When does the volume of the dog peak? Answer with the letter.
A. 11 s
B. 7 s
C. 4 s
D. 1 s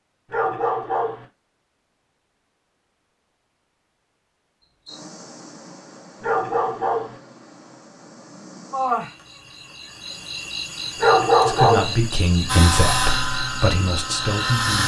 A.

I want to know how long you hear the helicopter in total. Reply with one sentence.
You can hear the helicopter for 2 seconds altogether.